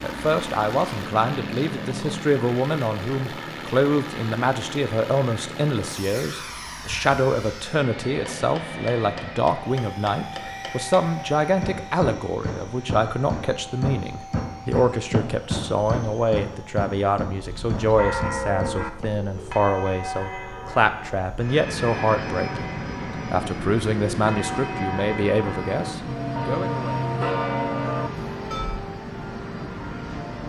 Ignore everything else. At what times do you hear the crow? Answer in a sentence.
You can't hear the crow here.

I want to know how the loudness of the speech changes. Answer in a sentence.
The volume of the speech stays about the same.